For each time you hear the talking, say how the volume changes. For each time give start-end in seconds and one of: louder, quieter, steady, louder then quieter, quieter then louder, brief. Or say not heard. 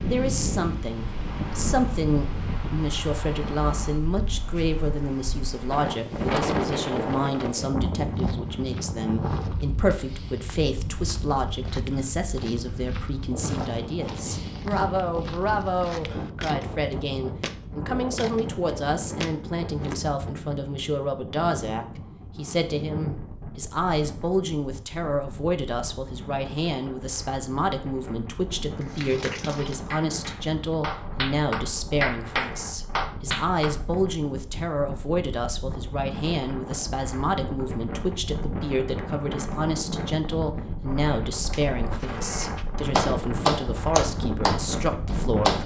0.0-45.6 steady.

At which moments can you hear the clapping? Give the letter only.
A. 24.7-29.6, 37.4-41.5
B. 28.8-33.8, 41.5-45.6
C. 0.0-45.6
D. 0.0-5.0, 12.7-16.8
B.